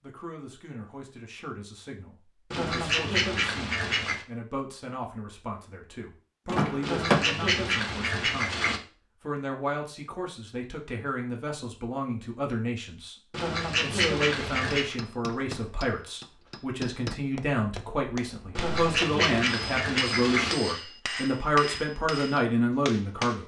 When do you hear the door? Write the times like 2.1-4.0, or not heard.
6.5-7.2.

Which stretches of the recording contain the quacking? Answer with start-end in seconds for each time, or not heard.
2.5-4.2, 6.8-8.8, 13.3-14.9, 18.6-20.6.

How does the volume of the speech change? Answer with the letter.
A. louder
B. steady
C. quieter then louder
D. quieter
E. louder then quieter
A.